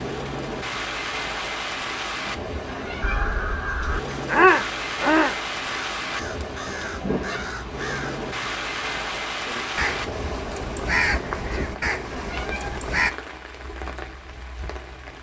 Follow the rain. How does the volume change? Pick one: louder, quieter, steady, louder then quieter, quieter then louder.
quieter.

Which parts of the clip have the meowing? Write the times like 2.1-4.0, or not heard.
2.2-3.4, 6.7-7.5, 11.7-12.8.